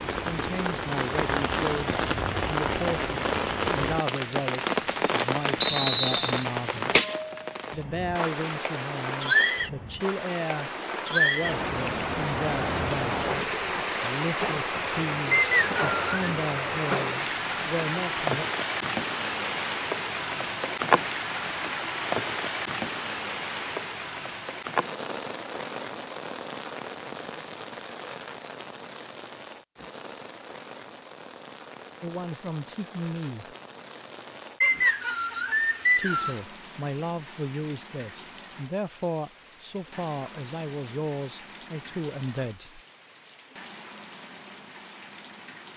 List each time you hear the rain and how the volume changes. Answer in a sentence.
The rain can be heard from 0.0 to 45.7 s, getting quieter.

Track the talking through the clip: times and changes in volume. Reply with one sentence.
You can hear the talking from 0.1 to 7.0 s, at a steady volume; from 7.7 to 18.4 s, at a steady volume; briefly from 32.0 to 33.5 s; and from 36.0 to 42.8 s, at a steady volume.